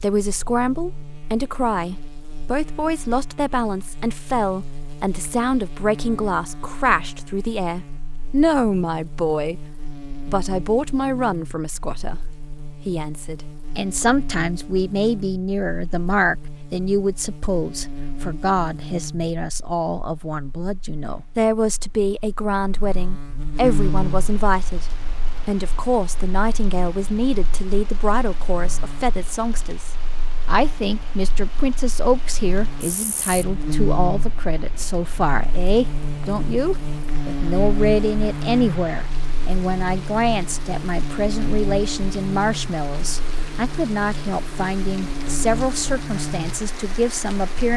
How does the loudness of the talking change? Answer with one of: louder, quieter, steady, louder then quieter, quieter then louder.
steady.